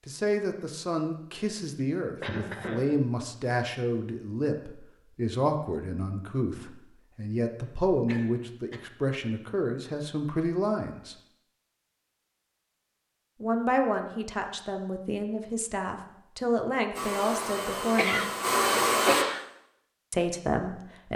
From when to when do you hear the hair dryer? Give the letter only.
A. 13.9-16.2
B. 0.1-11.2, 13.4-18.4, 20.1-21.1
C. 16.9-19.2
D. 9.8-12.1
C.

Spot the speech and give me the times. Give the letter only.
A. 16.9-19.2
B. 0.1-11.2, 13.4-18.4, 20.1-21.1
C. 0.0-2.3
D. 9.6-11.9
B.